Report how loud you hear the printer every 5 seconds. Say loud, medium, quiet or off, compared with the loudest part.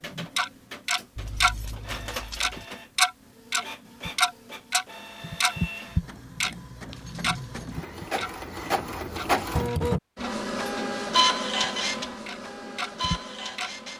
quiet, loud, loud.